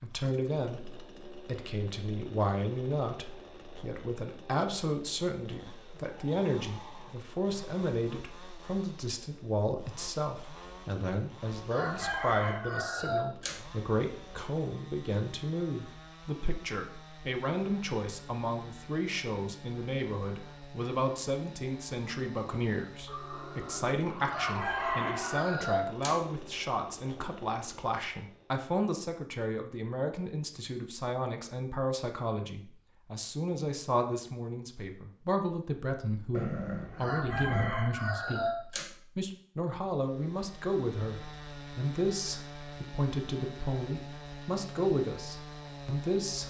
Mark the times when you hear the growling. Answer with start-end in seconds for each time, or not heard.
6.0-7.2, 23.1-25.6, 36.3-37.8.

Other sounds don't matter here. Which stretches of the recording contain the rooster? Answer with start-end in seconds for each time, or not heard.
11.7-13.7, 24.3-26.2, 37.0-39.0.